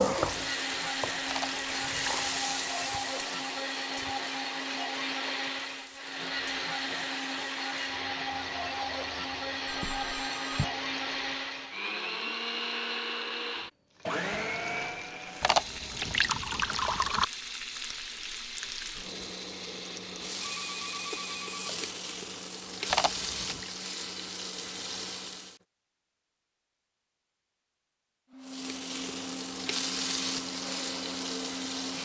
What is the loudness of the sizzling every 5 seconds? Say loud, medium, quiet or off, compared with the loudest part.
loud, quiet, quiet, medium, loud, loud, loud.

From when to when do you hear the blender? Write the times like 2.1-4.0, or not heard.
0.1-21.4, 28.3-31.9.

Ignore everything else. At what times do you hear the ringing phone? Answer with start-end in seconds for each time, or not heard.
9.7-10.7, 20.4-21.8.